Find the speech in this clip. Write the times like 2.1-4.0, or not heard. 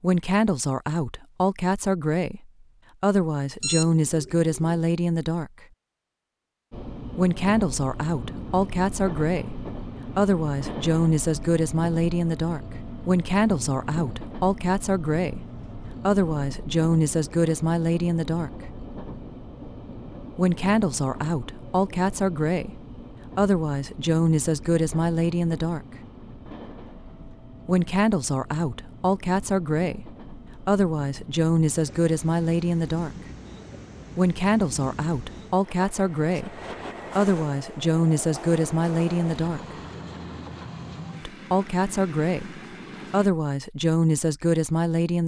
0.0-5.7, 7.2-18.5, 20.4-25.9, 27.6-33.1, 34.1-39.6, 41.2-45.2.